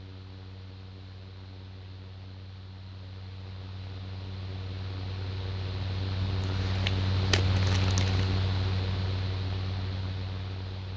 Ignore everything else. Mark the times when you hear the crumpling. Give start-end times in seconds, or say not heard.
6.4-8.3.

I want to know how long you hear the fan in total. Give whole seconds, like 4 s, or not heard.
11 s.